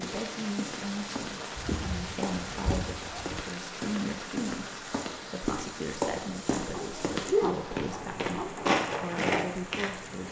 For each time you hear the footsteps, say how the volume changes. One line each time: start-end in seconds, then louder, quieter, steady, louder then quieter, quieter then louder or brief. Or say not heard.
0.0-10.2 louder.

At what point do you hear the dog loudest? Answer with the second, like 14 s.
7 s.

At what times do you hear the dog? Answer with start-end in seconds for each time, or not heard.
1.6-3.5, 6.7-8.7.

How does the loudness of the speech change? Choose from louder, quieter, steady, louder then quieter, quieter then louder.
steady.